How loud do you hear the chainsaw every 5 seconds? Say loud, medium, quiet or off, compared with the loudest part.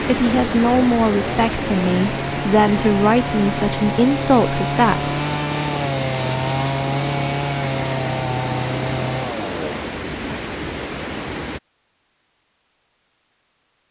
loud, loud, off.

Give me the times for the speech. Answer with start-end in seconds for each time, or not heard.
0.0-5.2.